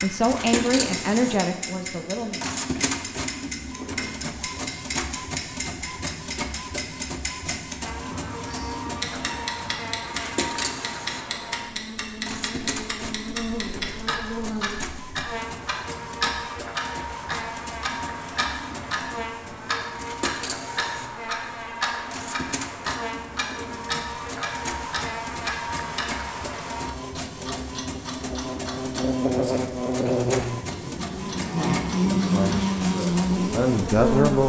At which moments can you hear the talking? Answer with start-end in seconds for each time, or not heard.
0.0-2.5, 32.2-34.4.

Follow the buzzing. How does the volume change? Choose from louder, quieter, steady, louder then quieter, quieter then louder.
louder.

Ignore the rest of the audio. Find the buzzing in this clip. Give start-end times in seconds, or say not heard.
7.8-34.4.